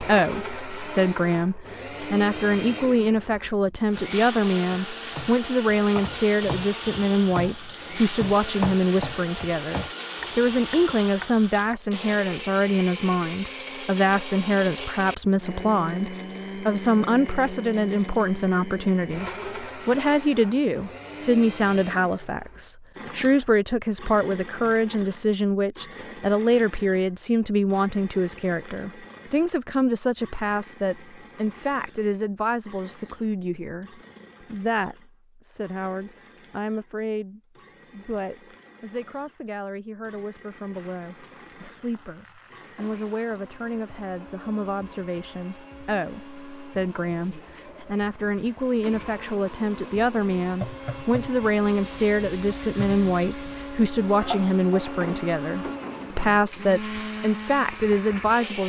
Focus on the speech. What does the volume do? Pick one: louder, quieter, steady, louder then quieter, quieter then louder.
quieter then louder.